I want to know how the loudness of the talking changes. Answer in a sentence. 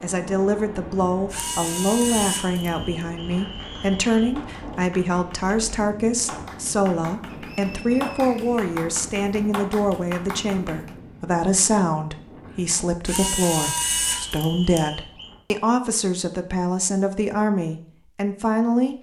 The volume of the talking stays about the same.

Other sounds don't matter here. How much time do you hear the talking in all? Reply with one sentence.
The talking can be heard for 19 seconds in total.